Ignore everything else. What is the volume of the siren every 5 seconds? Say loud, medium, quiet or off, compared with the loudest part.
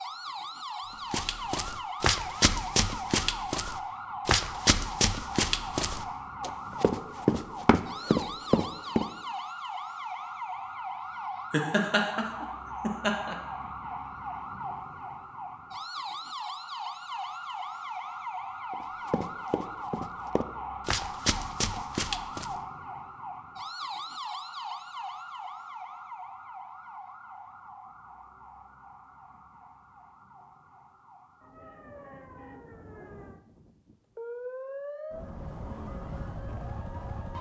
loud, loud, loud, loud, loud, medium, medium, loud.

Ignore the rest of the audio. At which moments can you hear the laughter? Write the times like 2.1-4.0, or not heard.
11.5-13.3.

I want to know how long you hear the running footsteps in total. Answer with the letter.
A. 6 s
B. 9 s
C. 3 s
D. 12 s
D.